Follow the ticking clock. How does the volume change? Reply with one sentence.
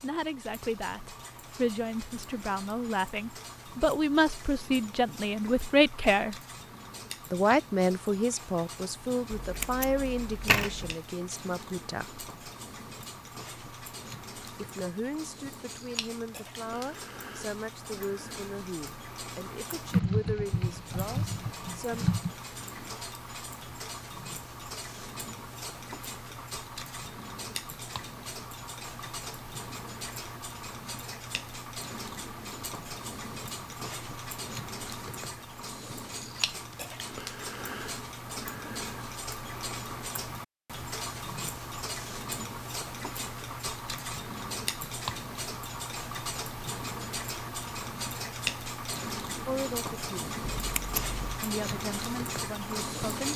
The loudness of the ticking clock goes up.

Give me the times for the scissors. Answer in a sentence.
You can hear the scissors from 9.3 to 10.9 s and from 50.5 to 51.4 s.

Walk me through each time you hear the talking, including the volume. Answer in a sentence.
The talking can be heard from 0.0 to 6.3 s, getting louder; from 7.3 to 12.2 s, getting quieter; from 14.6 to 22.1 s, at a steady volume; briefly from 49.5 to 50.4 s; and briefly from 51.4 to 53.3 s.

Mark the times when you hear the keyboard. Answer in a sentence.
You can hear the keyboard from 19.9 to 22.3 s.